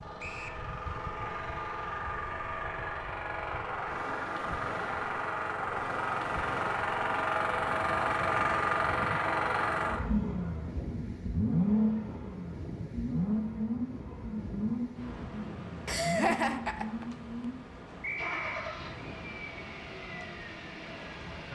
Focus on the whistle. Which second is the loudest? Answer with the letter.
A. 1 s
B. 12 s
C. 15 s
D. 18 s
D.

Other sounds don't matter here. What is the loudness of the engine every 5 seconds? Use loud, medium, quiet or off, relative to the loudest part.
medium, loud, loud, medium, quiet.